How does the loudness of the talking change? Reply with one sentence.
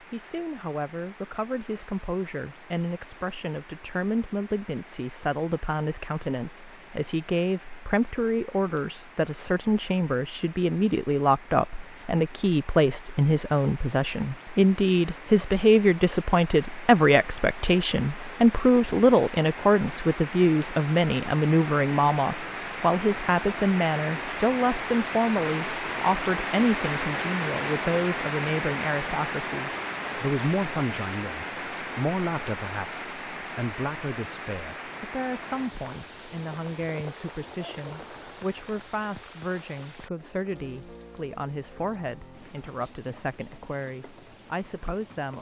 The loudness of the talking goes up, then down.